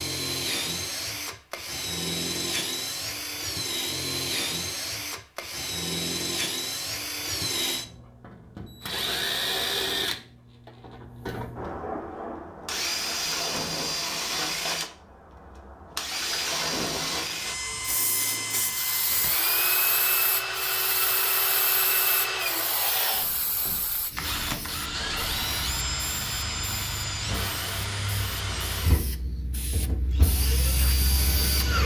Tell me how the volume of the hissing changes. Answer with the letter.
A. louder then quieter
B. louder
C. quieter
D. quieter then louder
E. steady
D.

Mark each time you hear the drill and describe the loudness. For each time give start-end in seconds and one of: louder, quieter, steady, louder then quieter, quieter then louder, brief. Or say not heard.
0.0-31.8 steady.